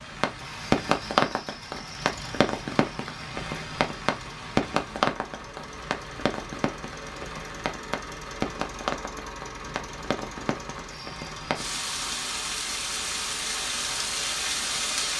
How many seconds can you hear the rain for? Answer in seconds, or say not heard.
15 s.